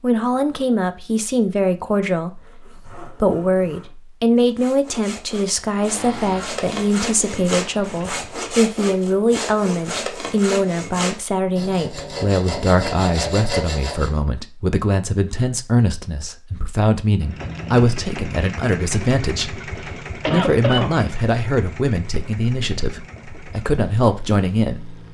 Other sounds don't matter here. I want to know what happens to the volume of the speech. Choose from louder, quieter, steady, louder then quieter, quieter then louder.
steady.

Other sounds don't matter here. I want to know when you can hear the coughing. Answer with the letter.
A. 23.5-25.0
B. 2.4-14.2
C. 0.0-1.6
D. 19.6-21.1
D.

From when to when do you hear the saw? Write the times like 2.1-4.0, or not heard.
2.4-14.2.